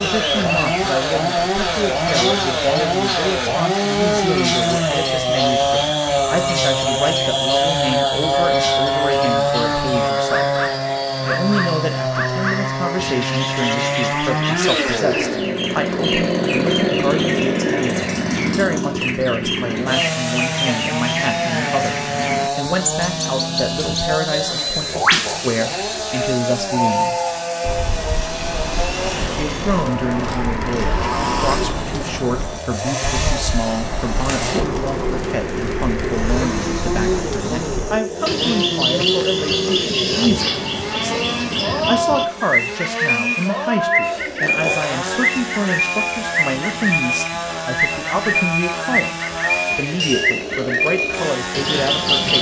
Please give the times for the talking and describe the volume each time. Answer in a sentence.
The talking can be heard from 0.0 to 10.6 s, at a steady volume; from 11.2 to 27.1 s, at a steady volume; and from 29.3 to 52.3 s, at a steady volume.